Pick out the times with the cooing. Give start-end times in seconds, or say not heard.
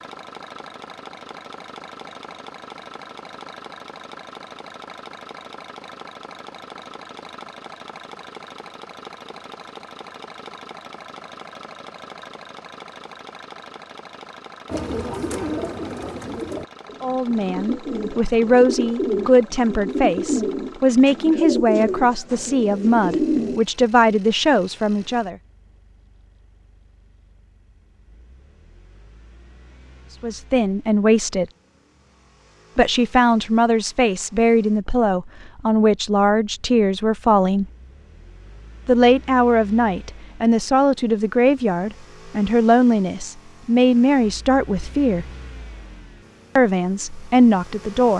14.7-23.6.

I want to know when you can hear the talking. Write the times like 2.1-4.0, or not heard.
17.0-25.4, 30.2-31.4, 32.8-37.6, 38.9-45.2, 46.5-48.1.